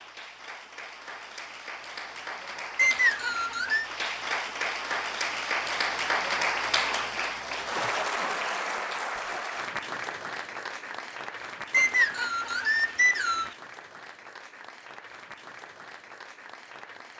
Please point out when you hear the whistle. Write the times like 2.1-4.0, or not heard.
2.8-3.9, 11.7-13.6.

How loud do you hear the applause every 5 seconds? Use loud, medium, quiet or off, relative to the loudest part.
medium, loud, medium, quiet.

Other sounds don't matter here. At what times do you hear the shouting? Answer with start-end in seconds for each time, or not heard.
not heard.